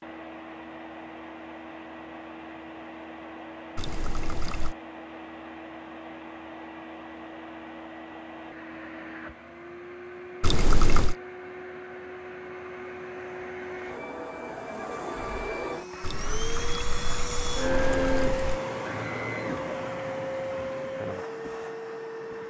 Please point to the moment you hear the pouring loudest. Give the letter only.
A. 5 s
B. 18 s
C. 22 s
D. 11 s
D.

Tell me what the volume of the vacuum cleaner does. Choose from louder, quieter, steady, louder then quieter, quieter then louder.
louder.